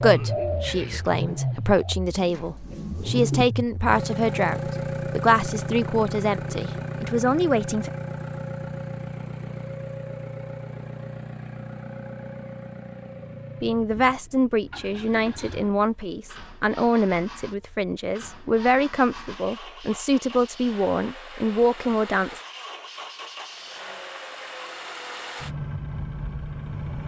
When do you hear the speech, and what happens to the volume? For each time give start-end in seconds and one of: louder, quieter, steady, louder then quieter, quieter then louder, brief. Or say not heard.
0.0-7.9 steady
13.6-22.4 steady.